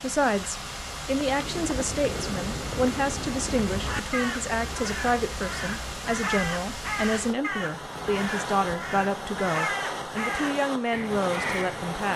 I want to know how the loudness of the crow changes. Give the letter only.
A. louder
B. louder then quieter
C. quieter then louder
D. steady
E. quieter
D.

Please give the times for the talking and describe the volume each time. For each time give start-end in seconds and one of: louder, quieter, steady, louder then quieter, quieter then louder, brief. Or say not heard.
0.0-12.1 steady.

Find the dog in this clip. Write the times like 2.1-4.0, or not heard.
not heard.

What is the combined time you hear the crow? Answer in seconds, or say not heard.
11 s.